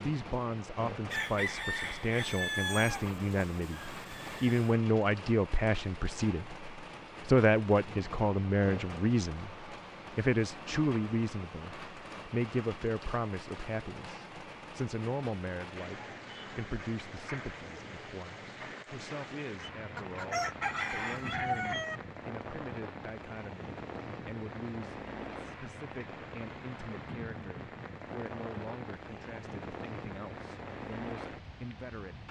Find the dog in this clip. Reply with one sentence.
You can't hear the dog here.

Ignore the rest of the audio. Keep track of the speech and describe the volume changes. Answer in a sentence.
The volume of the speech goes down.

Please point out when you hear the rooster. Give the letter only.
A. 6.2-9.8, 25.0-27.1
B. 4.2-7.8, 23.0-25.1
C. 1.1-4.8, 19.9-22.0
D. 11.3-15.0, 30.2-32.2
C.